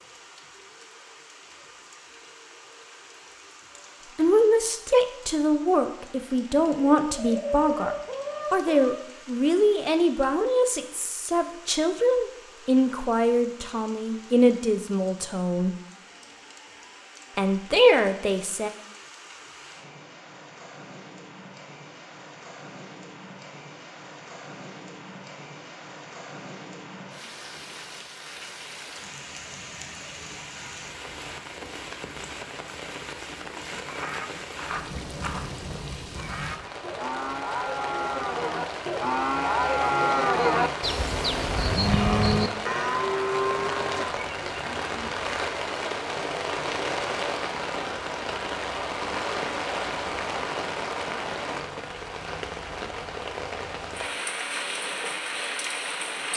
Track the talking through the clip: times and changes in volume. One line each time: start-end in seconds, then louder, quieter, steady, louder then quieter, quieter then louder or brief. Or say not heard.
4.2-15.8 steady
17.4-18.7 brief.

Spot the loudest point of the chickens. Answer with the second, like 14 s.
8 s.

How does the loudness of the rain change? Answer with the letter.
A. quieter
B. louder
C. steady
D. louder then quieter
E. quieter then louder
B.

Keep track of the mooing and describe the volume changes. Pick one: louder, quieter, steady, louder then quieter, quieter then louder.
louder.